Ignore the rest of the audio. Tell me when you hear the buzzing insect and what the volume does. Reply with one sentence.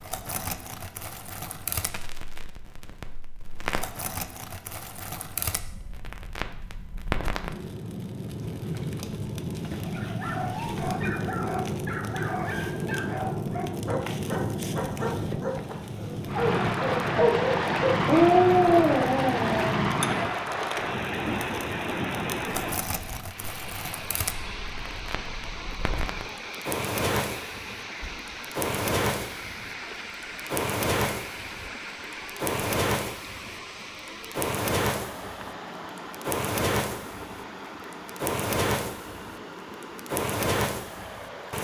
The buzzing insect can't be heard in this clip.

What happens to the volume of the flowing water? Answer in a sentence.
The loudness of the flowing water goes down.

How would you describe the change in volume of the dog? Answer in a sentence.
The loudness of the dog goes up.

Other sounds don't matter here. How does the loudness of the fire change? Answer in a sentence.
The volume of the fire goes up.